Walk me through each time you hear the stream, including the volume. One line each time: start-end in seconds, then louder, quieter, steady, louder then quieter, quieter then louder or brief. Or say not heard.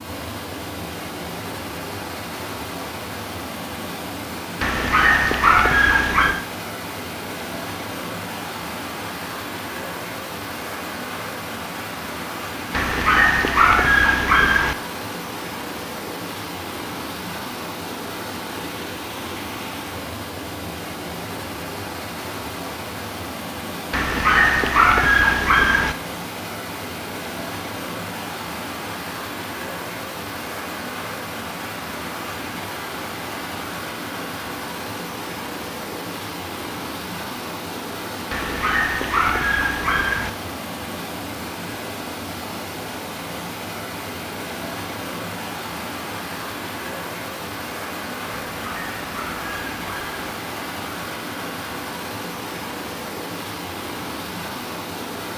0.0-55.3 steady.